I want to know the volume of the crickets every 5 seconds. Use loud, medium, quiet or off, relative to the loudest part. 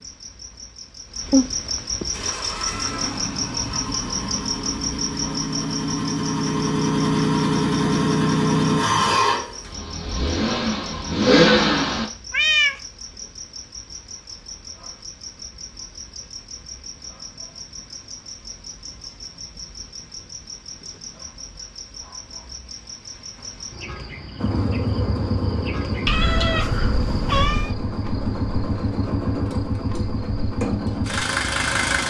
loud, loud, medium, medium, medium, medium, medium.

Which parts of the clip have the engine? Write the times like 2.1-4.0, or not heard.
2.1-12.1, 24.4-32.0.